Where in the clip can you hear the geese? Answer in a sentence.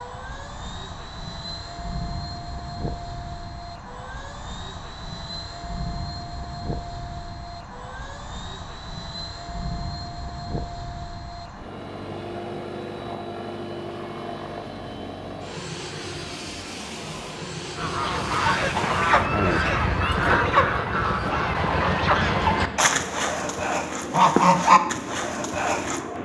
You can hear the geese from 17.8 to 26.0 s.